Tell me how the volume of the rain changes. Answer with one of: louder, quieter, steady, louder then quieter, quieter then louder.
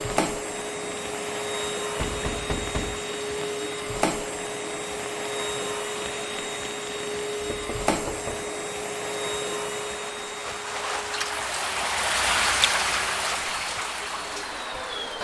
louder.